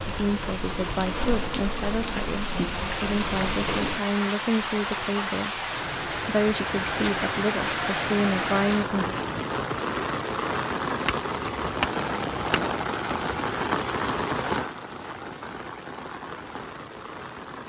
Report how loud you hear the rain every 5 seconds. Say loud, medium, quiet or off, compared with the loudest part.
loud, loud, loud, medium.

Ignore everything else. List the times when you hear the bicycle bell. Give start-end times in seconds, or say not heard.
11.1-12.7.